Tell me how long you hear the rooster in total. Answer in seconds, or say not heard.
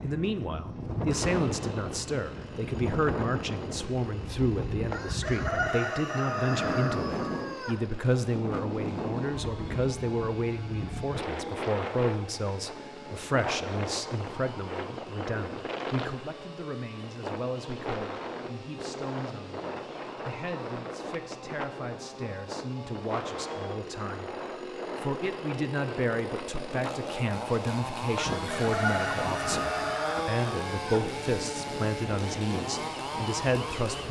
6 s.